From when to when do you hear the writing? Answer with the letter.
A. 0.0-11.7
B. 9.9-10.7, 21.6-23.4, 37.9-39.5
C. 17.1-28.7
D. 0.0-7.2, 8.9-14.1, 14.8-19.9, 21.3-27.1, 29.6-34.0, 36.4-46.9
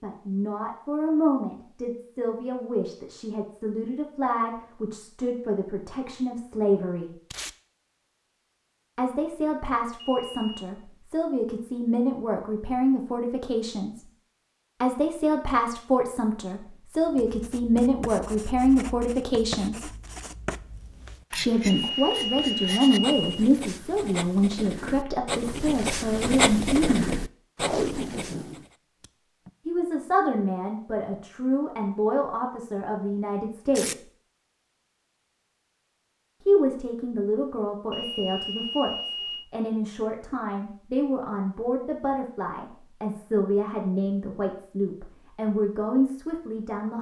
C.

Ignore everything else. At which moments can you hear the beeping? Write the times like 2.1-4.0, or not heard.
9.9-10.7, 21.6-23.4, 37.9-39.5.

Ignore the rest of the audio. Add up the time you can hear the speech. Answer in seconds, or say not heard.
38 s.